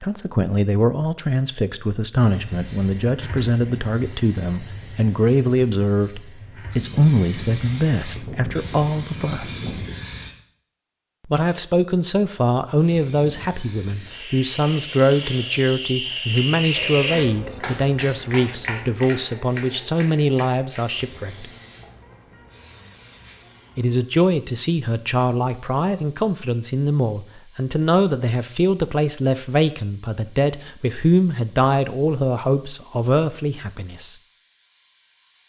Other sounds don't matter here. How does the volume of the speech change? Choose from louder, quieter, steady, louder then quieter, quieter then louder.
steady.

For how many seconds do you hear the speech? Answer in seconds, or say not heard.
30 s.